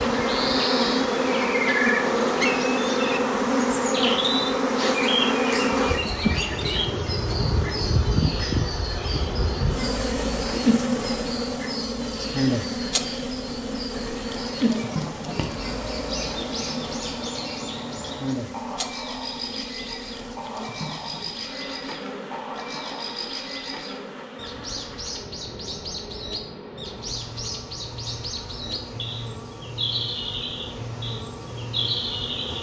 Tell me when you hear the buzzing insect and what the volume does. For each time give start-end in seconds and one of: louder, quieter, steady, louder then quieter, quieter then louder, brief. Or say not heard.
0.0-32.5 quieter.